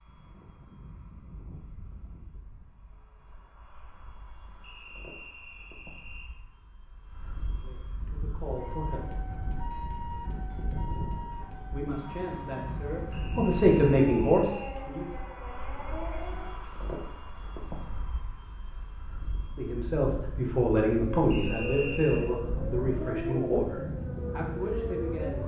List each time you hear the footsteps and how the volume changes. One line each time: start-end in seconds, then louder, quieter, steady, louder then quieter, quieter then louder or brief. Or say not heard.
not heard.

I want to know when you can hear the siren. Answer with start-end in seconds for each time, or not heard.
8.4-16.6, 20.8-25.4.